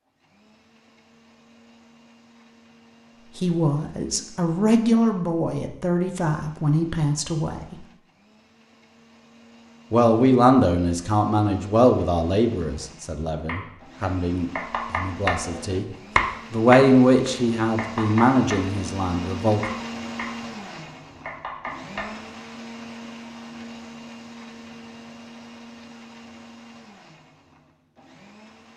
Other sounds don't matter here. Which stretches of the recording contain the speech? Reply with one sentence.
You can hear the speech from 3.4 to 7.8 s, from 9.9 to 15.8 s and from 16.5 to 19.6 s.